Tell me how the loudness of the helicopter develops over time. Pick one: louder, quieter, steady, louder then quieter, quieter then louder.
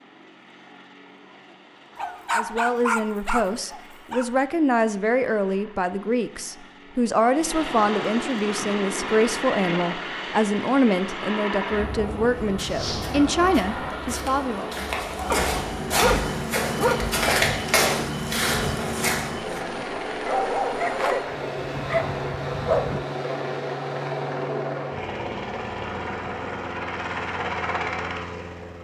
louder.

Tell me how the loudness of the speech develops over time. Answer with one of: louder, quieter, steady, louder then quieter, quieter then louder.
steady.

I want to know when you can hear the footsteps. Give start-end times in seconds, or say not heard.
12.2-19.6.